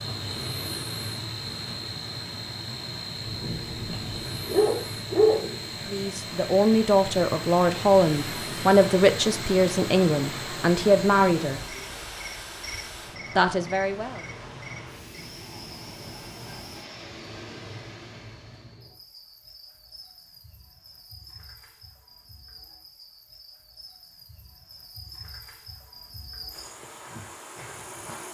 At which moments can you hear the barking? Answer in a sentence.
You can hear the barking from 3.2 to 5.6 s.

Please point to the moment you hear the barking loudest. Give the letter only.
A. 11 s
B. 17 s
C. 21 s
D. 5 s
D.